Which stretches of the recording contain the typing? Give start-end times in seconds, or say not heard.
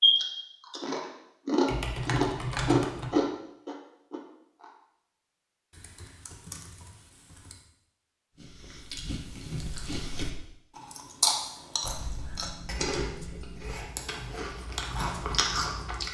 1.6-3.1, 5.7-7.6, 11.8-13.8.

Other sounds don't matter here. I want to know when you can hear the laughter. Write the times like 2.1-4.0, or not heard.
not heard.